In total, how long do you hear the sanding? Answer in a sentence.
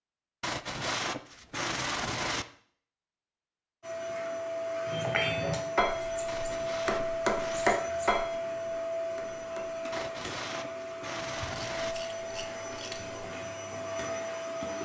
The sanding can be heard for 6 seconds in total.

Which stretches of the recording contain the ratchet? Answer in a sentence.
You can hear the ratchet from 11.3 to 13.3 s.